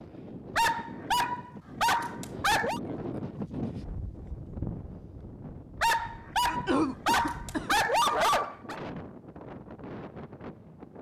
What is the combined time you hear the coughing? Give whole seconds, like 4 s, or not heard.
2 s.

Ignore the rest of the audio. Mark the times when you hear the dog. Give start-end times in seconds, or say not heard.
0.6-2.8, 5.8-8.8.